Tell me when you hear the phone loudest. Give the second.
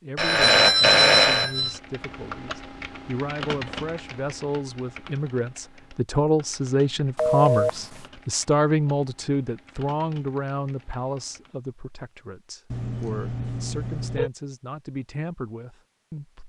1 s.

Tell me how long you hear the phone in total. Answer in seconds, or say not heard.
4 s.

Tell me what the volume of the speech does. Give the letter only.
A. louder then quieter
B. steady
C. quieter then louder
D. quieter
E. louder
A.